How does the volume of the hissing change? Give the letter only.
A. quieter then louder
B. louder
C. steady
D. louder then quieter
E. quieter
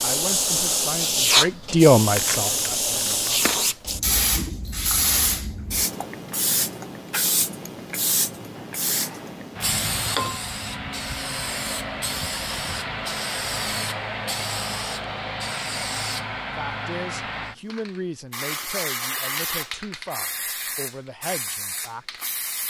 E.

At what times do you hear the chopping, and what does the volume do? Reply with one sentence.
The chopping can't be heard in this clip.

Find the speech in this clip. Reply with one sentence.
The speech can be heard from 0.0 to 3.5 s and from 16.6 to 22.2 s.